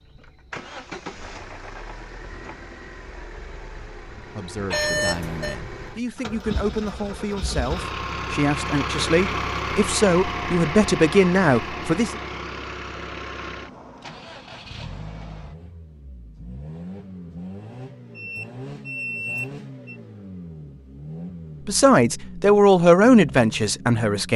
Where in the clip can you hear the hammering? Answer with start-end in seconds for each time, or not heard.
not heard.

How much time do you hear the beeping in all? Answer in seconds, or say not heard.
3 s.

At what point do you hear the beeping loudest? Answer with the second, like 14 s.
5 s.